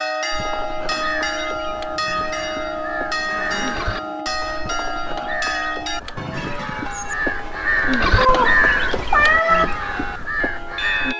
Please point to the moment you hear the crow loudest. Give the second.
9 s.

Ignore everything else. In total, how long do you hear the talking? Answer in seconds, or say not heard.
not heard.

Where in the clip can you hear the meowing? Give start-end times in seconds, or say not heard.
8.2-9.7.